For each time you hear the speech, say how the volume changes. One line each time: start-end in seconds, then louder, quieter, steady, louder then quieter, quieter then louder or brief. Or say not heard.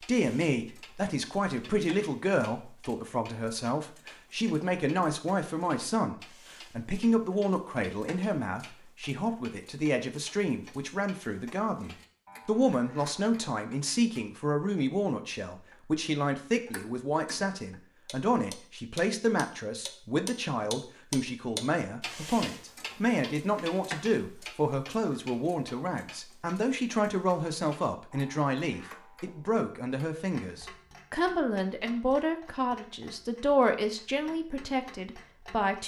0.0-35.8 steady.